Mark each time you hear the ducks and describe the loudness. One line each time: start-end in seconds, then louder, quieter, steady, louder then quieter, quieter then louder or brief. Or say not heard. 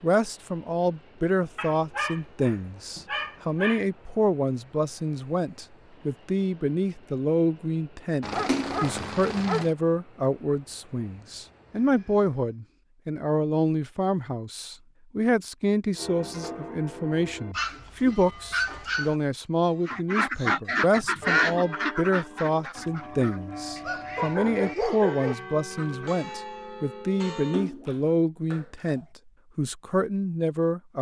19.9-26.1 quieter.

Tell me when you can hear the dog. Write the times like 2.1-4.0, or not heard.
1.6-3.9, 8.2-9.7, 17.5-19.1, 23.9-25.4.